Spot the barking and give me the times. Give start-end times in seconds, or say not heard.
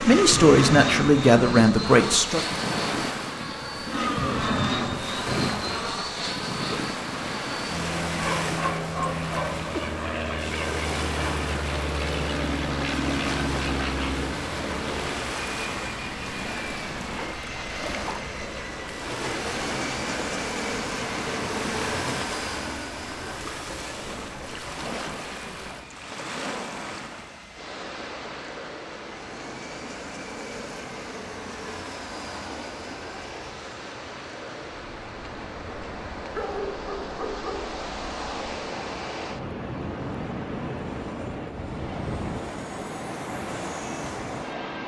8.2-9.7, 36.3-37.8.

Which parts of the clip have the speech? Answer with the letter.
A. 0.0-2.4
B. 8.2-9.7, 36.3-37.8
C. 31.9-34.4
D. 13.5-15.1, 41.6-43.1
A.